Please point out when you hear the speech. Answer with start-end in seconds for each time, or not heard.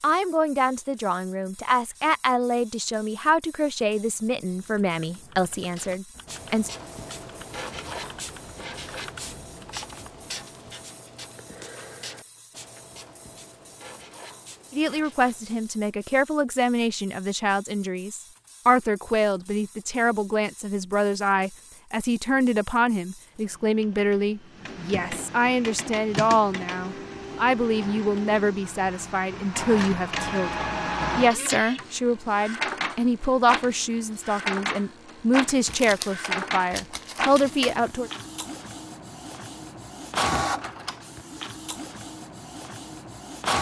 0.0-6.7, 14.7-38.1.